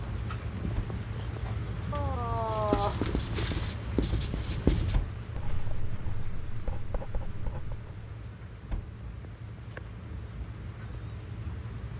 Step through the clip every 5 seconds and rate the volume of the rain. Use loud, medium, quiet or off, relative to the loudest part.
loud, medium, medium.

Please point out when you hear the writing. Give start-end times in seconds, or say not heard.
2.3-8.0.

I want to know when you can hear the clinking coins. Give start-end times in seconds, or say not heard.
1.9-3.8.